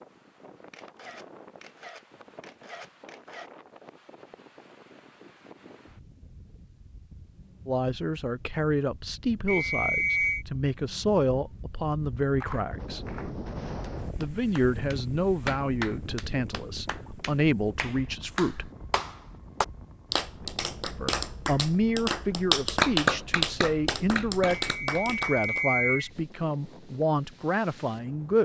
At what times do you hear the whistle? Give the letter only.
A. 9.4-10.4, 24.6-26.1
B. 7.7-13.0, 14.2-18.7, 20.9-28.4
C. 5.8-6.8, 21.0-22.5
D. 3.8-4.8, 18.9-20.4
A.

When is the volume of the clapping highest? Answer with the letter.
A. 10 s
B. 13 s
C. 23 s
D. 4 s
C.